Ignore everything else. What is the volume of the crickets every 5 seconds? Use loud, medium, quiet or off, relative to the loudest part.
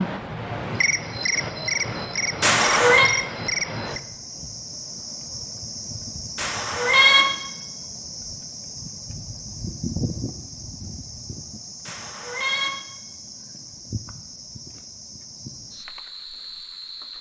loud, medium, medium, medium.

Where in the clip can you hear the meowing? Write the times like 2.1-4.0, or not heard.
2.4-3.1, 6.3-7.2, 11.8-12.7.